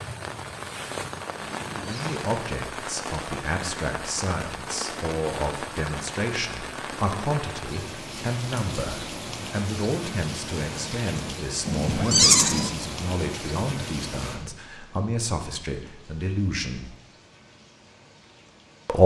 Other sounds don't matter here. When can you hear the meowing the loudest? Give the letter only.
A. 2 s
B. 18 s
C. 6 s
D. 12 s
D.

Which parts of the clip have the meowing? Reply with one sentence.
You can hear the meowing from 1.4 to 2.4 s and from 11.7 to 12.7 s.